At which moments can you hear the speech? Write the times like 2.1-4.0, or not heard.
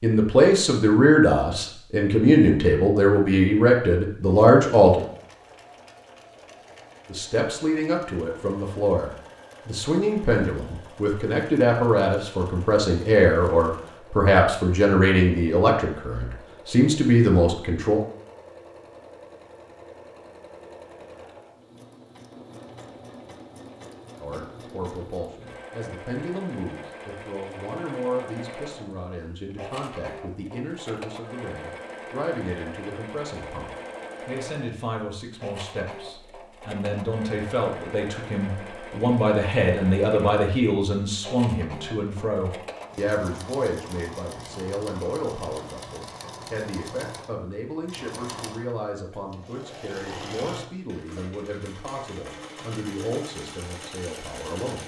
0.0-5.0, 7.0-18.0, 24.2-54.8.